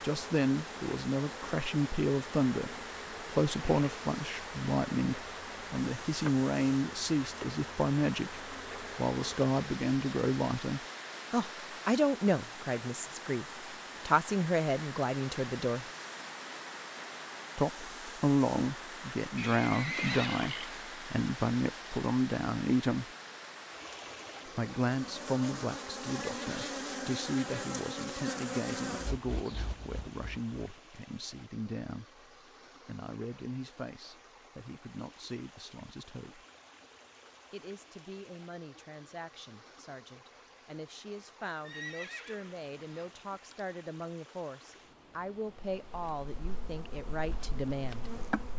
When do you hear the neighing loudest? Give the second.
20 s.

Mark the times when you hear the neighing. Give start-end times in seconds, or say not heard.
19.4-20.8, 41.6-43.6.